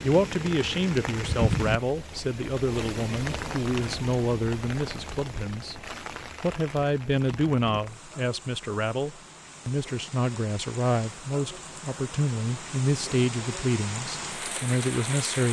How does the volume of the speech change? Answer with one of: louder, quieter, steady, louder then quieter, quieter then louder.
steady.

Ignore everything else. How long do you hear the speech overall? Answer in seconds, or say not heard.
15 s.